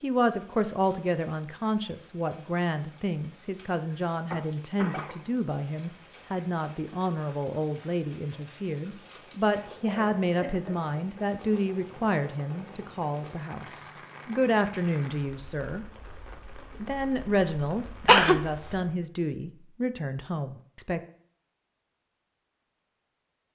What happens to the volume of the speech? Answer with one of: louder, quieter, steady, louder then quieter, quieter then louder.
steady.